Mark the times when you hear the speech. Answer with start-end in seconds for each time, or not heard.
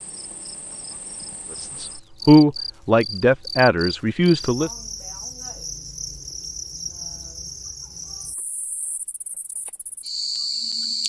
1.6-4.7.